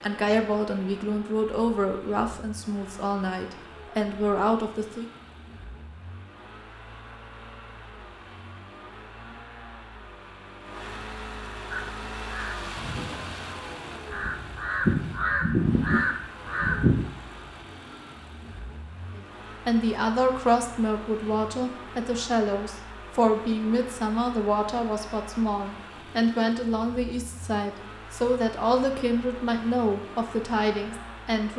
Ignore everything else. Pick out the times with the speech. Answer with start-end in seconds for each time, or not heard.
0.0-5.0, 19.1-31.5.